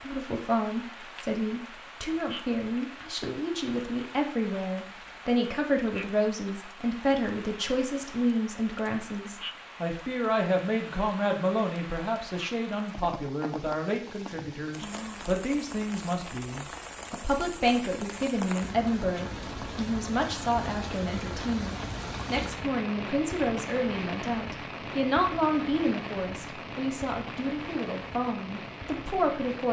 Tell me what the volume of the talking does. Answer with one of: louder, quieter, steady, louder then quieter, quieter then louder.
steady.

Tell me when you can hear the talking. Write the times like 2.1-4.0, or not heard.
0.1-29.6.